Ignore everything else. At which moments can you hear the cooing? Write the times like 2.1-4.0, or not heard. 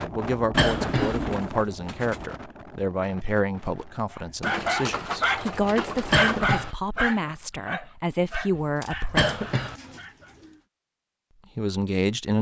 0.6-2.3, 4.4-6.5, 8.6-10.6.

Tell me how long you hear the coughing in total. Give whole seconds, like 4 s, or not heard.
2 s.